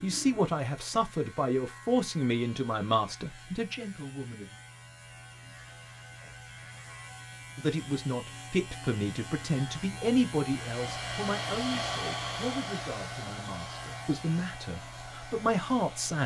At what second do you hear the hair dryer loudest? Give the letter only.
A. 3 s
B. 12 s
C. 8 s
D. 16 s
B.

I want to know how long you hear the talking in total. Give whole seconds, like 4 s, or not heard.
13 s.